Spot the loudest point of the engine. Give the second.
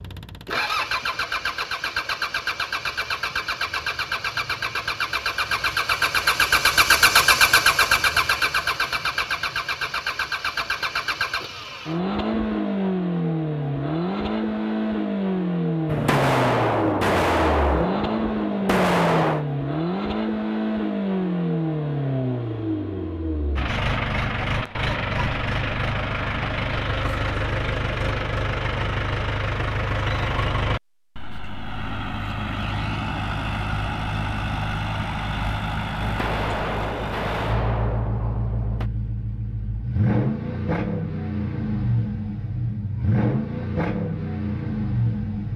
7 s.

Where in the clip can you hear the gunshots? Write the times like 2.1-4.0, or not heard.
15.8-19.4, 36.0-38.9.